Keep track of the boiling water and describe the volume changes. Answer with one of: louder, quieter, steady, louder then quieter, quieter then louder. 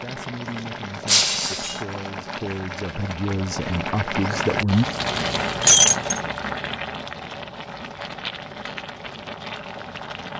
louder then quieter.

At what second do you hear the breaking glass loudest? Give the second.
6 s.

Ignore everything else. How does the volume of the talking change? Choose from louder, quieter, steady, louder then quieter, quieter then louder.
louder.